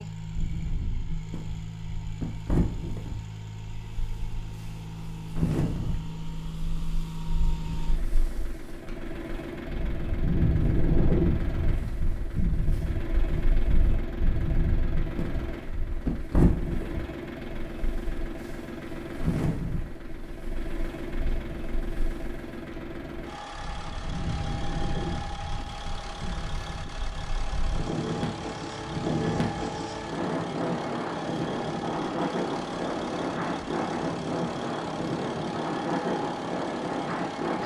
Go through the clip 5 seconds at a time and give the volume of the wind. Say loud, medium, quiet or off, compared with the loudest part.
medium, medium, loud, loud, medium, loud, loud, loud.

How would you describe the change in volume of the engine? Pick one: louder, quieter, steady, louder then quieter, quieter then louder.
steady.